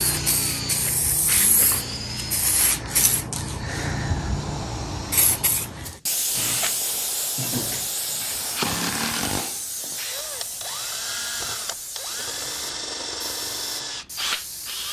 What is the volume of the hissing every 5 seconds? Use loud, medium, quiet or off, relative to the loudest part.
loud, loud, medium.